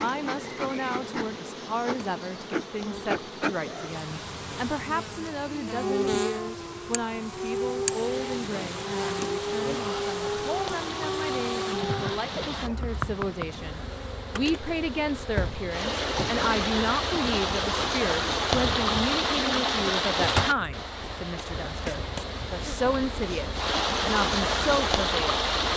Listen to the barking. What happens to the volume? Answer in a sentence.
The loudness of the barking stays about the same.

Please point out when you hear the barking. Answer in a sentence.
You can hear the barking from 5.5 to 12.6 s.